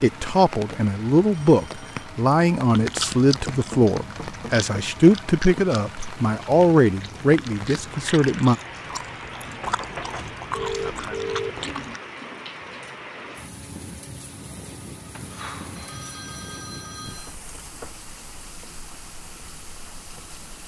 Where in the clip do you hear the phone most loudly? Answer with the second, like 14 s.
11 s.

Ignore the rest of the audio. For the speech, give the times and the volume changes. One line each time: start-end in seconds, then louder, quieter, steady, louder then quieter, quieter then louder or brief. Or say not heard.
0.0-8.6 steady.